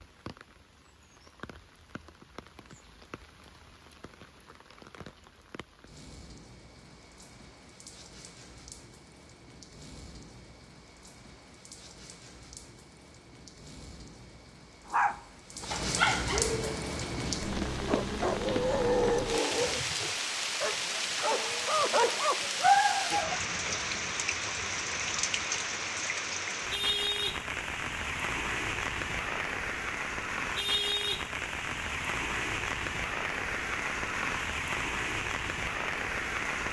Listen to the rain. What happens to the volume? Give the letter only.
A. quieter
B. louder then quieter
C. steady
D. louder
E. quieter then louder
D.